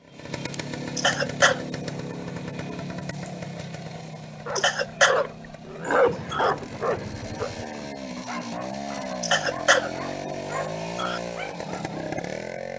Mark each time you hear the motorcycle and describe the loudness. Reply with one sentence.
You can hear the motorcycle from 0.0 to 12.7 s, getting quieter then louder.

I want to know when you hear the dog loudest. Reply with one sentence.
The loudest moment of the dog is at 6 seconds.